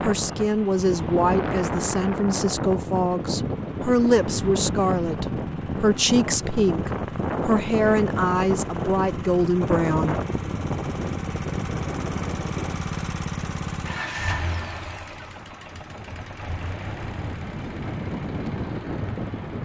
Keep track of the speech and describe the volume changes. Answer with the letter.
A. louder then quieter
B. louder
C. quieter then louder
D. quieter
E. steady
E.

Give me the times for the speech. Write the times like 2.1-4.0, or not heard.
0.0-10.2.